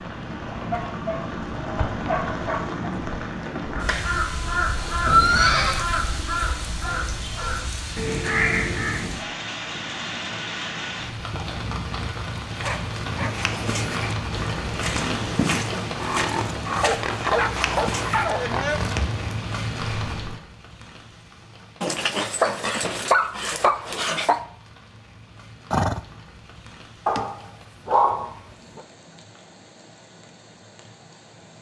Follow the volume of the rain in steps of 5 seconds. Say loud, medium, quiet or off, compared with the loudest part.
loud, loud, loud, loud, medium, quiet, quiet.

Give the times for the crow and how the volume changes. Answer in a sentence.
You can hear the crow from 3.8 to 9.2 s, getting quieter then louder.